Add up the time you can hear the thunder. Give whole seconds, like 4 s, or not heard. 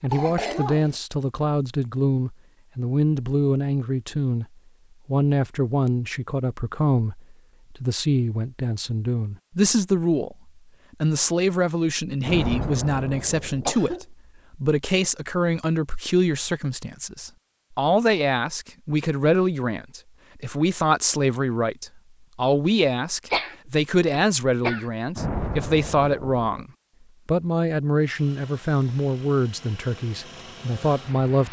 3 s.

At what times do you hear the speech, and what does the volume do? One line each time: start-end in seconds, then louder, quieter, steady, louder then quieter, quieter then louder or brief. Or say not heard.
0.0-4.5 steady
5.0-31.4 steady.